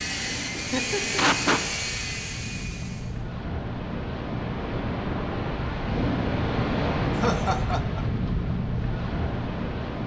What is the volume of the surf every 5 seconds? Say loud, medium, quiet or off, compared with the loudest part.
medium, loud.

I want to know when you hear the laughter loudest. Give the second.
1 s.